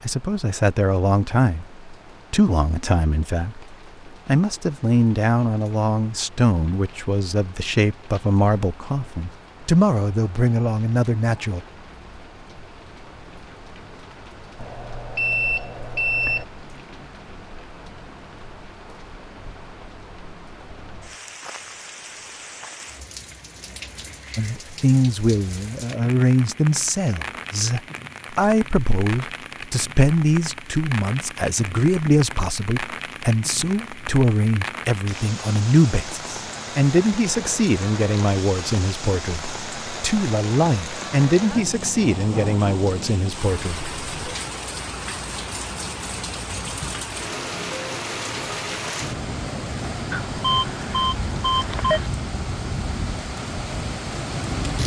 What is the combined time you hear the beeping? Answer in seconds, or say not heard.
4 s.